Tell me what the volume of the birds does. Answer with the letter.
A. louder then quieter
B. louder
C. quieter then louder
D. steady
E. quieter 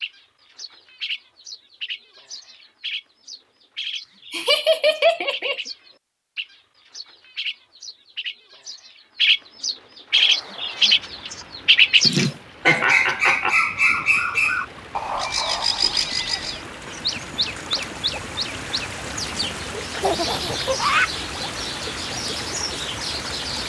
A.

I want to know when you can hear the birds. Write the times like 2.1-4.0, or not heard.
0.0-23.6.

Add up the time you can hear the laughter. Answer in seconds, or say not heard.
4 s.